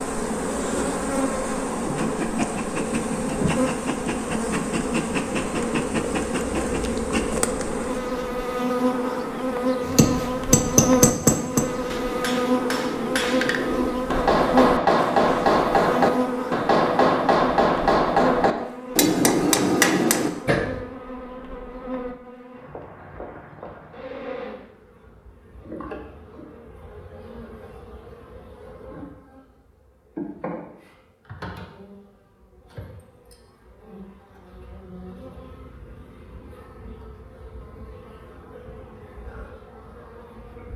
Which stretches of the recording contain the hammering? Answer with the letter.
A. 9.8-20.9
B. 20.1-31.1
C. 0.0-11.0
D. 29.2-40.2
A.